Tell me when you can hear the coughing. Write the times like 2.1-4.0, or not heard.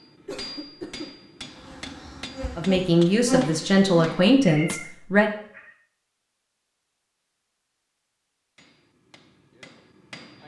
0.2-1.1.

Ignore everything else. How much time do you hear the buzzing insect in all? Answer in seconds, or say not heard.
3 s.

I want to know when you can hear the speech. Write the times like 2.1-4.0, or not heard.
2.5-5.3.